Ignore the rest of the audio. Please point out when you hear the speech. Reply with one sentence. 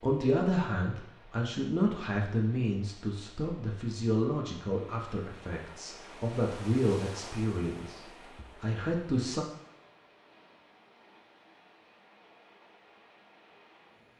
The speech can be heard from 0.0 to 9.4 s.